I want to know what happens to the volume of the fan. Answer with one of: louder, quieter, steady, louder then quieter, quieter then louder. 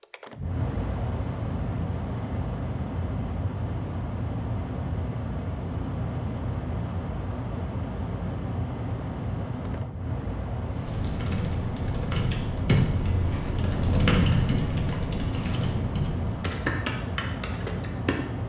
steady.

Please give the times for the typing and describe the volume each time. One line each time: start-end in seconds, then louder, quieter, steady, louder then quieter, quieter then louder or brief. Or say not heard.
10.7-18.2 louder then quieter.